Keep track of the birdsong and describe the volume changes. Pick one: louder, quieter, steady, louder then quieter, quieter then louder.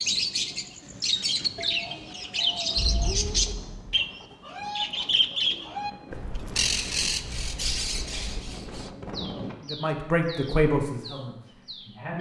quieter.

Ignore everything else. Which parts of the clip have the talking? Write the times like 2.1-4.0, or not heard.
9.7-12.1.